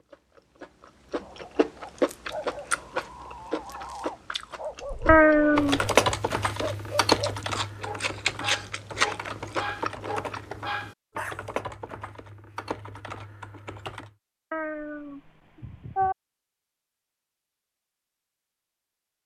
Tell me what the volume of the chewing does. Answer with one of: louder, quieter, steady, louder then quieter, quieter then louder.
quieter then louder.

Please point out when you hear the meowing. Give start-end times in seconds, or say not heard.
5.0-5.9, 14.5-16.1.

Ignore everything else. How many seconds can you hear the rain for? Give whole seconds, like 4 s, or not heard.
not heard.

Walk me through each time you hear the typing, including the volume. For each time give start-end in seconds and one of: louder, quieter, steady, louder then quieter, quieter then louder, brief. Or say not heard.
4.8-14.1 quieter.